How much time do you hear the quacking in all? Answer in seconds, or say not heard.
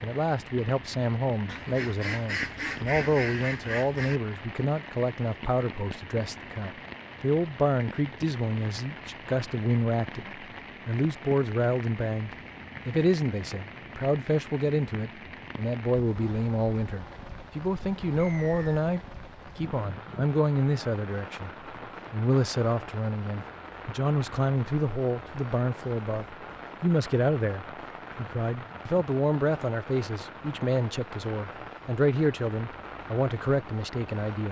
3 s.